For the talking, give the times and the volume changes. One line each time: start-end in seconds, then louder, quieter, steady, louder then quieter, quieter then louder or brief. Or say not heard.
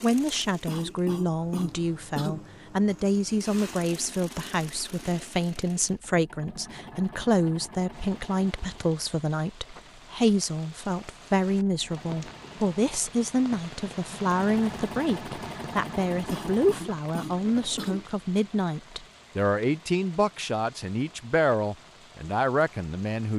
0.0-23.3 steady.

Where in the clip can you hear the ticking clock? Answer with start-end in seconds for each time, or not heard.
not heard.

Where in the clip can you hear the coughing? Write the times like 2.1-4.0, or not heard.
0.7-2.5, 16.2-18.1.